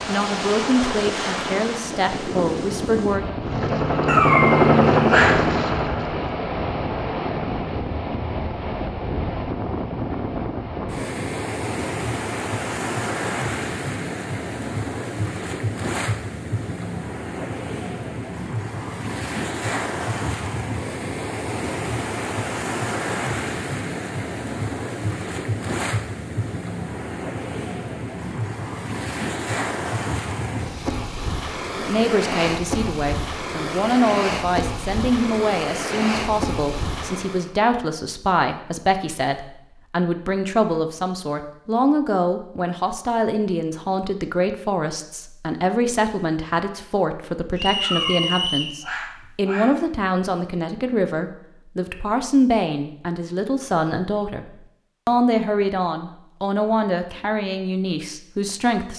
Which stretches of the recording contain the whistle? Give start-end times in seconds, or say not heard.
47.5-48.8.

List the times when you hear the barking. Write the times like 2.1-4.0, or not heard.
4.0-5.5, 47.8-49.8.